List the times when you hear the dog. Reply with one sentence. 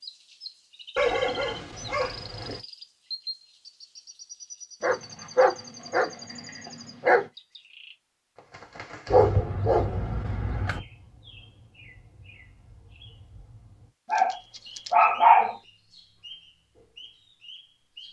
You can hear the dog from 0.9 to 2.6 s, from 4.8 to 7.2 s, from 9.1 to 10.8 s and from 14.1 to 15.6 s.